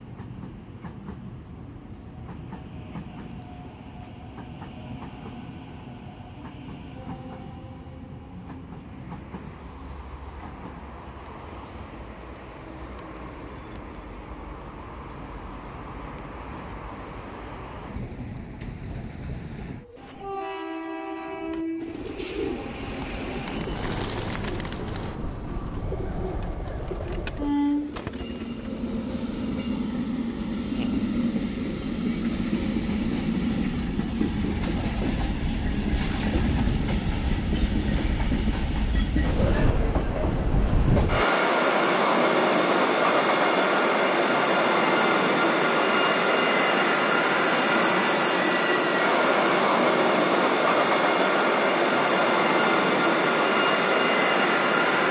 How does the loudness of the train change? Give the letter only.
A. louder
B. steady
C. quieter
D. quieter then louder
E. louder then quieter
A.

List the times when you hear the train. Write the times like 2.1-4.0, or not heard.
0.0-55.0.